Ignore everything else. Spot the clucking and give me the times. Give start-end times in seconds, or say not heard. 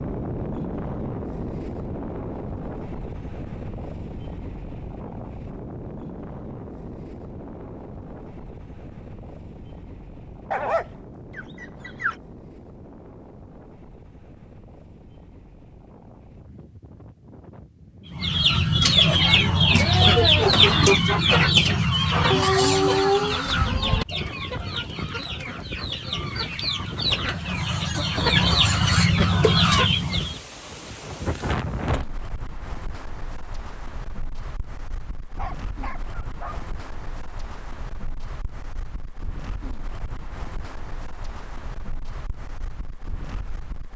18.1-30.4.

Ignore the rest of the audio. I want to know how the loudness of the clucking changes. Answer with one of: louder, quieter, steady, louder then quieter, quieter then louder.
quieter then louder.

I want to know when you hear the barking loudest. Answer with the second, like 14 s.
23 s.